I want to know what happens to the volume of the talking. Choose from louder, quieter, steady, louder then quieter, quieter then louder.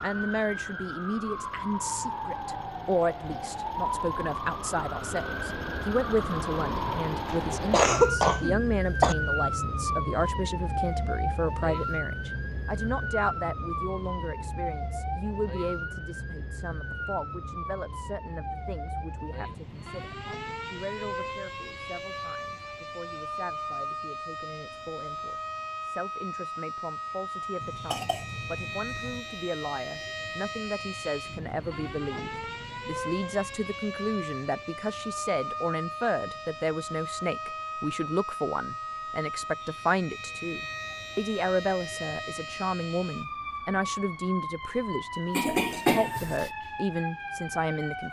quieter then louder.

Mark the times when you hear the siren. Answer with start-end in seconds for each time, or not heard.
0.0-48.0.